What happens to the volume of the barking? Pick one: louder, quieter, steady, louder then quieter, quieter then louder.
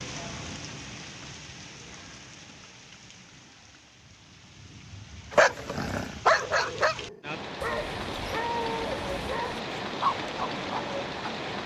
quieter then louder.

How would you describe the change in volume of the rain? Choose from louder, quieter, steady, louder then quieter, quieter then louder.
quieter then louder.